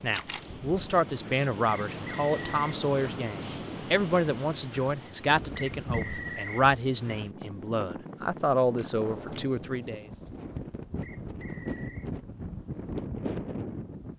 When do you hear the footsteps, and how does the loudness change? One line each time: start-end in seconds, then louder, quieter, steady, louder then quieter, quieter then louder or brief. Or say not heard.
not heard.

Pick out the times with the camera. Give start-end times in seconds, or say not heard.
0.1-0.5, 8.8-9.4.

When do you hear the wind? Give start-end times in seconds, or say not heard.
0.0-14.1.